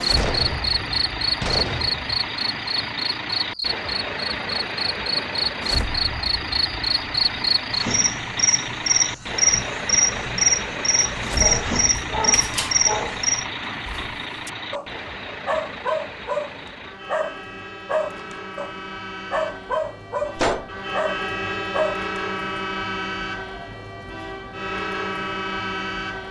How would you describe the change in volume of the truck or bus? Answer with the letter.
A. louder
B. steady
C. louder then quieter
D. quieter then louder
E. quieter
D.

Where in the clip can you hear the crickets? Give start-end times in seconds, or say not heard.
0.1-13.4.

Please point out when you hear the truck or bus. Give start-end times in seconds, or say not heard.
0.0-26.2.